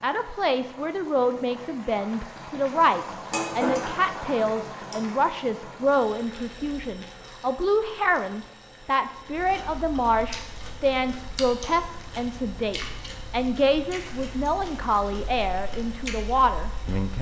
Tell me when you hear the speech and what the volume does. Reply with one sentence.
The speech can be heard from 0.0 to 17.1 s, at a steady volume.